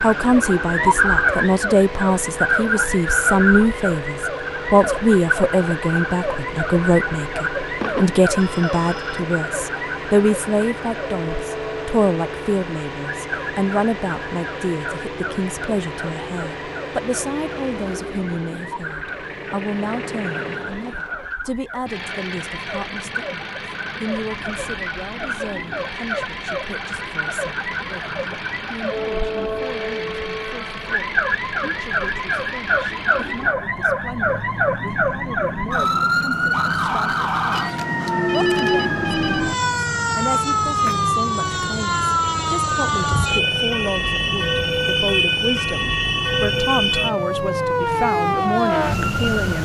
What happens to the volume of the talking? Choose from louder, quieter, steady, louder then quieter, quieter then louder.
quieter then louder.